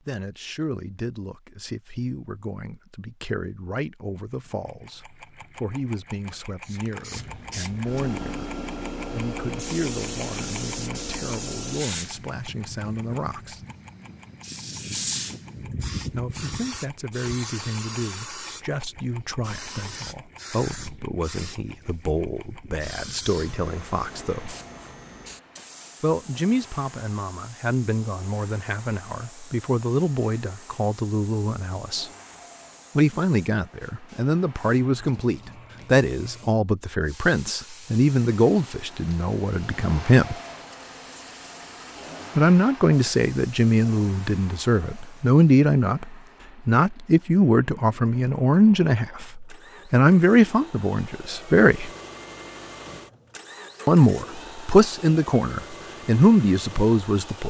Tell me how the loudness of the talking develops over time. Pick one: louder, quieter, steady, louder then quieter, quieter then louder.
louder.